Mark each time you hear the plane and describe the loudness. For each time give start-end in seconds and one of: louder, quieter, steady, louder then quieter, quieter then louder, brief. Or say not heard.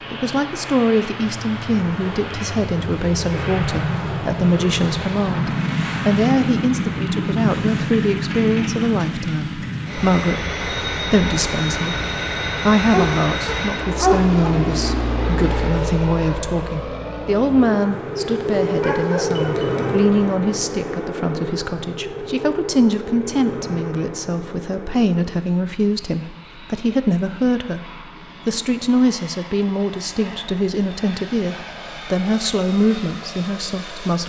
0.0-34.2 quieter.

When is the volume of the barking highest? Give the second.
14 s.